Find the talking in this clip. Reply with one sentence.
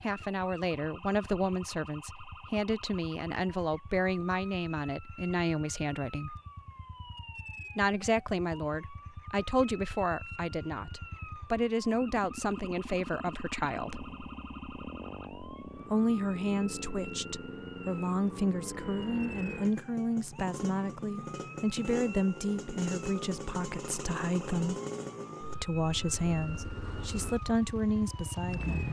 The talking can be heard from 0.0 to 6.3 s, from 7.8 to 14.1 s, from 15.8 to 24.8 s and from 25.6 to 28.8 s.